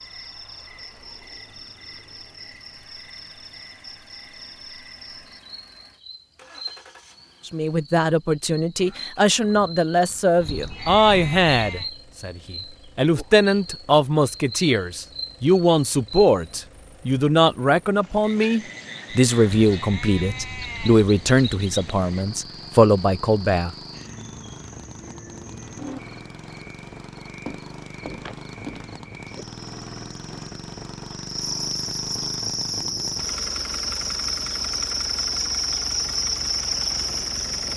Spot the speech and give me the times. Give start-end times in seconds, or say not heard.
7.5-23.8.